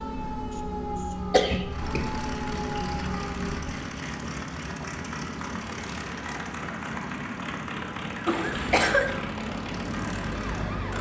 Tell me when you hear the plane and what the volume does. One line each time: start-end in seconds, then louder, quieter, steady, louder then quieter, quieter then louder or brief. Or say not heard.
1.7-10.9 steady.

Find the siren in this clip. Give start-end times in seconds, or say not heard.
0.0-3.8, 8.2-10.9.